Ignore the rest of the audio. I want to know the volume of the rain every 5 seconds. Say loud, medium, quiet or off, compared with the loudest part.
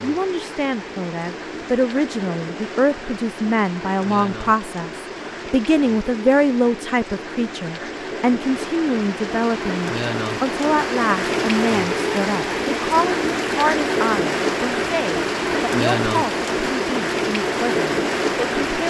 medium, medium, loud, loud.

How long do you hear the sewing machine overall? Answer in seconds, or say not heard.
not heard.